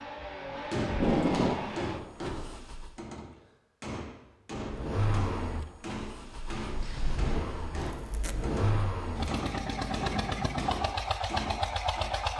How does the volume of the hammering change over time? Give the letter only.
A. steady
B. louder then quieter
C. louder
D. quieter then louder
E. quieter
A.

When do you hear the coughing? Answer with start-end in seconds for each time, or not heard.
not heard.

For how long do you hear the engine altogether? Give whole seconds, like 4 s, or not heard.
11 s.